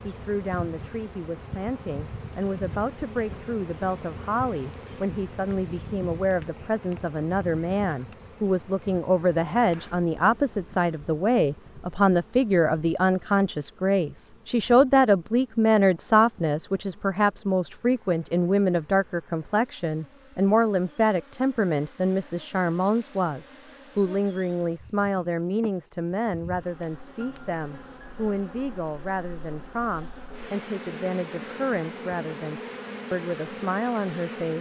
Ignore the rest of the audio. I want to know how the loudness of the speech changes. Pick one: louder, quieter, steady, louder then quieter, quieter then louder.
louder then quieter.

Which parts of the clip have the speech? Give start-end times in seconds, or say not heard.
0.0-34.5.